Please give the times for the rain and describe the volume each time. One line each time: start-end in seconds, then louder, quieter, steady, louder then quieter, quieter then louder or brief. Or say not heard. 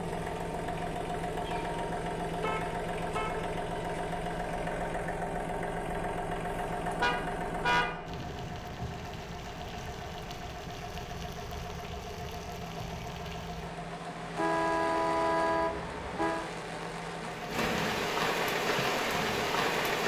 8.1-20.0 louder.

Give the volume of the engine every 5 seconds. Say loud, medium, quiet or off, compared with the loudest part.
loud, loud, medium, medium.